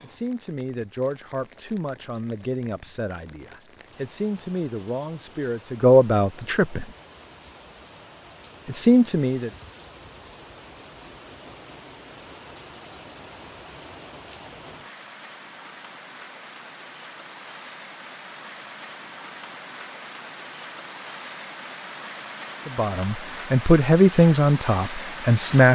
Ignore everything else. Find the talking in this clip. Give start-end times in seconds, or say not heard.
0.0-6.8, 8.7-9.5, 22.6-25.6.